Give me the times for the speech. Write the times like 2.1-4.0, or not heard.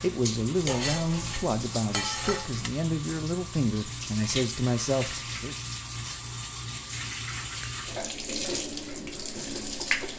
0.0-5.5.